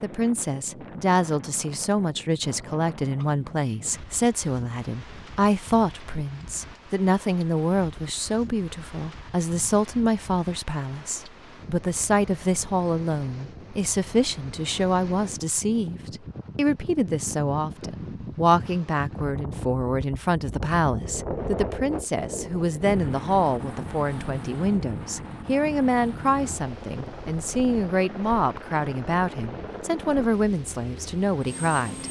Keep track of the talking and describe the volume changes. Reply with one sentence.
The volume of the talking stays about the same.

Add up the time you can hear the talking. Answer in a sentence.
You can hear the talking for 32 seconds altogether.